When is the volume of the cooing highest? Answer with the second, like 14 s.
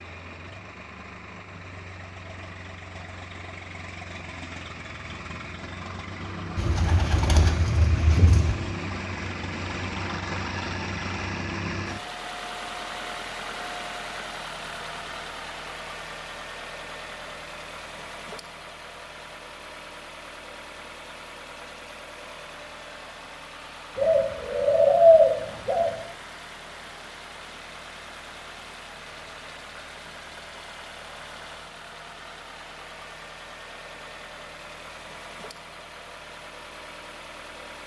25 s.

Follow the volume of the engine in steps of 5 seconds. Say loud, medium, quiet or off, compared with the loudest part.
medium, loud, loud, medium, medium, medium, medium, medium.